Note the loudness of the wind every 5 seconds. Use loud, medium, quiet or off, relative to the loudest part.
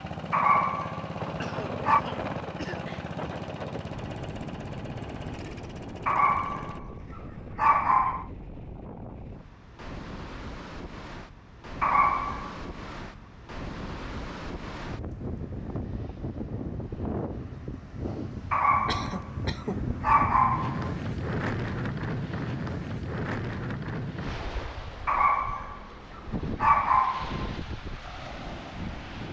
medium, medium, medium, loud, loud, medium.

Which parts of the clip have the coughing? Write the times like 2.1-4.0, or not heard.
1.4-2.9, 18.9-19.9.